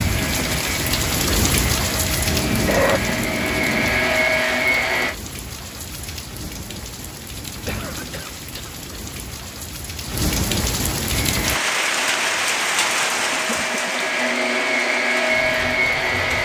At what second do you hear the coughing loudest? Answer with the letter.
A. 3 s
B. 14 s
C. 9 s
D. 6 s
A.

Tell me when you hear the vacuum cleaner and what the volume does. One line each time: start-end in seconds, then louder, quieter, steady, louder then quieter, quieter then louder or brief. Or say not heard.
0.0-5.2 louder
11.1-16.3 louder.